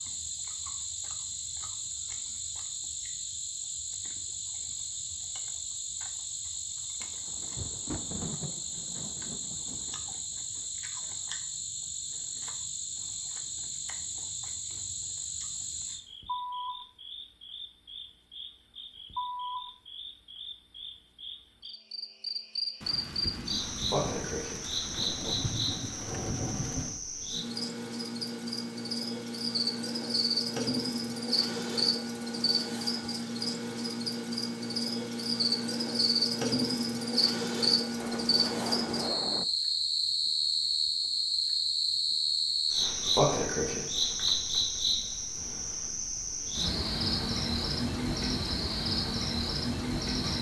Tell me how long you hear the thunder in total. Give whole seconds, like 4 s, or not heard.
9 s.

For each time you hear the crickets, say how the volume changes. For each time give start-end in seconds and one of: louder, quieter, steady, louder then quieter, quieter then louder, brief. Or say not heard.
0.0-50.3 louder.